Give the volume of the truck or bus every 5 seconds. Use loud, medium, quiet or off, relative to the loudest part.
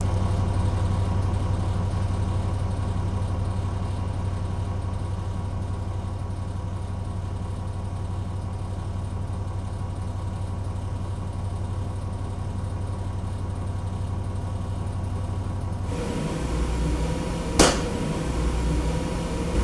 loud, medium, medium, loud.